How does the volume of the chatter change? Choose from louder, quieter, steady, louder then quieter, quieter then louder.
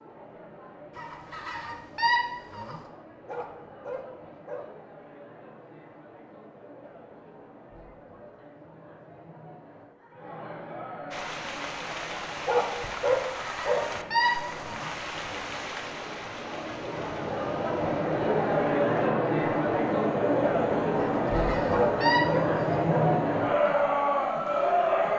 louder.